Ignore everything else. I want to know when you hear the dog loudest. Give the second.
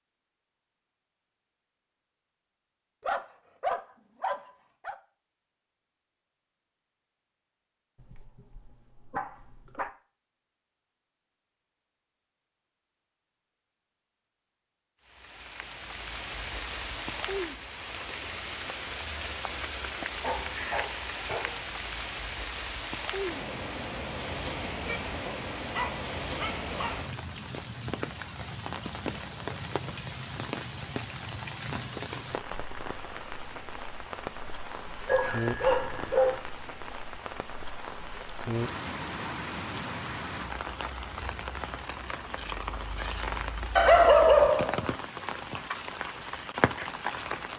44 s.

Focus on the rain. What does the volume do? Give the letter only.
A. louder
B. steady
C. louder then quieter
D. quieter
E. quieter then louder
B.